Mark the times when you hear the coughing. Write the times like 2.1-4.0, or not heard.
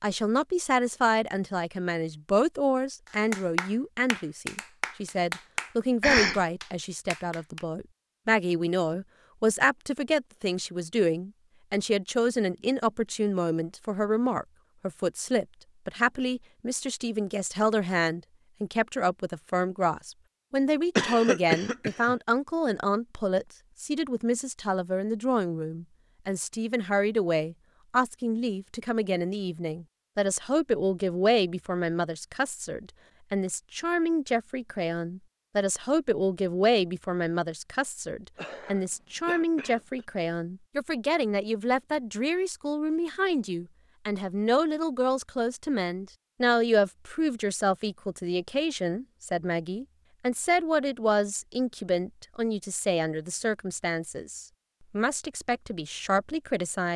6.0-6.4, 20.9-22.1, 38.4-40.0.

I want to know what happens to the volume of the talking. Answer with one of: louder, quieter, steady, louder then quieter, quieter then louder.
steady.